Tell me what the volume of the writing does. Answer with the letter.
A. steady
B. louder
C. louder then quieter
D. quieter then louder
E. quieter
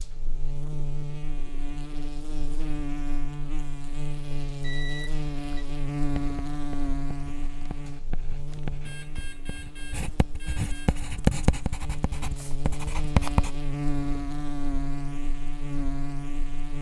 C.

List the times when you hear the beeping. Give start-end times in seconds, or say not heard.
4.6-5.7, 8.8-10.9.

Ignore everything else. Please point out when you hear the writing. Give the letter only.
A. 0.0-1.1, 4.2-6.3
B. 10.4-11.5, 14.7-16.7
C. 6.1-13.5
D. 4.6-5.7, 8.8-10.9
C.